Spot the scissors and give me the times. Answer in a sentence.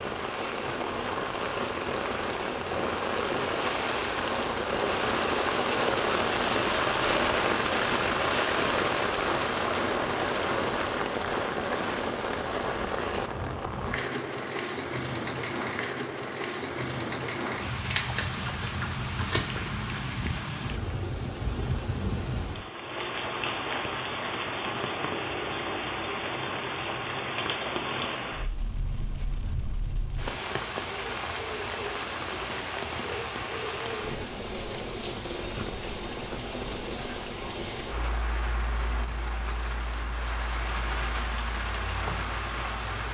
The scissors can be heard from 17.7 to 19.4 s.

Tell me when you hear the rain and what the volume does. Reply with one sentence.
The rain can be heard from 0.0 to 43.0 s, getting quieter.